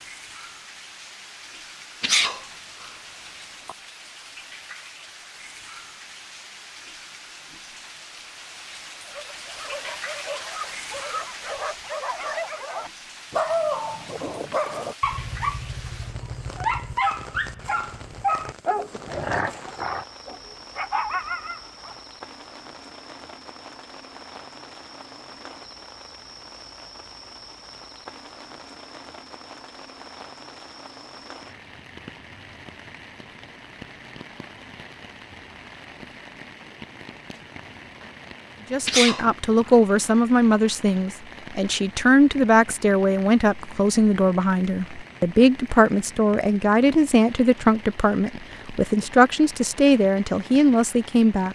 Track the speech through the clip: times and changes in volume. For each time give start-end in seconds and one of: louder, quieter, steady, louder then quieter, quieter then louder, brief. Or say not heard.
38.7-51.5 steady.